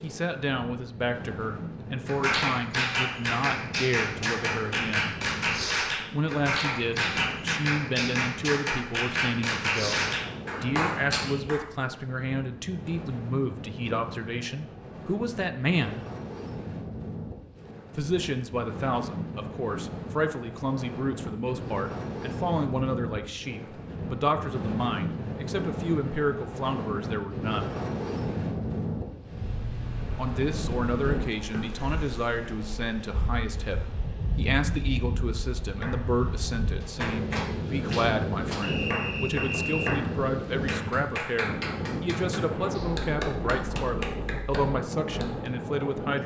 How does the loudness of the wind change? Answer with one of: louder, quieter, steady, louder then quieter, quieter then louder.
louder.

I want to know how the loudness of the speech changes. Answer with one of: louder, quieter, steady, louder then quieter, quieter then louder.
steady.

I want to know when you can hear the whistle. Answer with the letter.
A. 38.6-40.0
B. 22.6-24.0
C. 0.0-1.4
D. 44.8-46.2
A.